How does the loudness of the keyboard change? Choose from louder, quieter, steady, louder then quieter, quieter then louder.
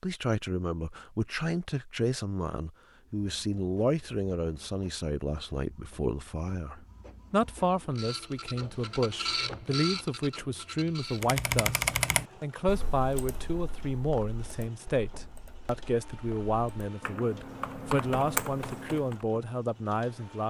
quieter then louder.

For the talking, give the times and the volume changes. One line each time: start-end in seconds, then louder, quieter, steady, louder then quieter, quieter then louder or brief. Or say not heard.
0.0-20.4 steady.